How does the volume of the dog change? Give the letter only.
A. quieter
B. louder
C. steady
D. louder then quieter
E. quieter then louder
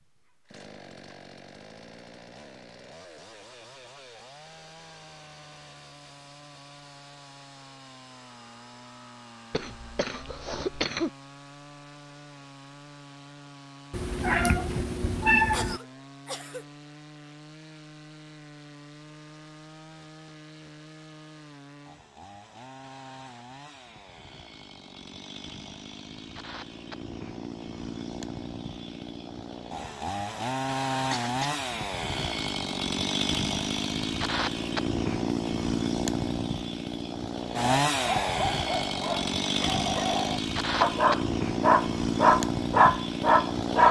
B.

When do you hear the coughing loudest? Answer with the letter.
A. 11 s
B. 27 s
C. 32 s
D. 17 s
A.